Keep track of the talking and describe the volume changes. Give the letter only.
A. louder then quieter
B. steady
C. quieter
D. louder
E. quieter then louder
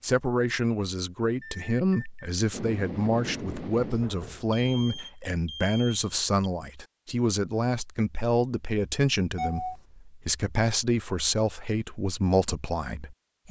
B.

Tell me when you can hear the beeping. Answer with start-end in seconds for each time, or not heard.
1.4-2.3, 4.5-6.5, 9.3-9.8.